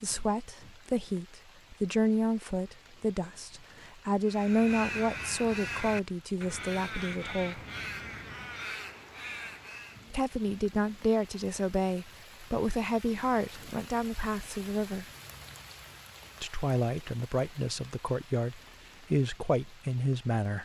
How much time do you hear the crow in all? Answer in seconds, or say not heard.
6 s.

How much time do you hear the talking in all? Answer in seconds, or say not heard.
17 s.